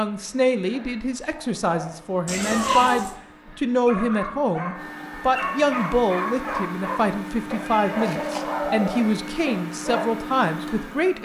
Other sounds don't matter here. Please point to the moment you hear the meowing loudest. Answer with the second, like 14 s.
3 s.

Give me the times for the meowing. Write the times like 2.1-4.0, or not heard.
2.2-3.1, 7.5-8.4.